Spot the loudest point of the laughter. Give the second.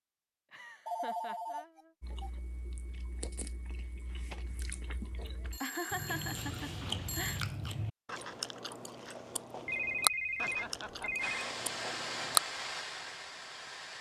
6 s.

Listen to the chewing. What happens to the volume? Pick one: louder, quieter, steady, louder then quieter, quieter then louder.
louder then quieter.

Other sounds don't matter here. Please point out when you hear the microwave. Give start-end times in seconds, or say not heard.
not heard.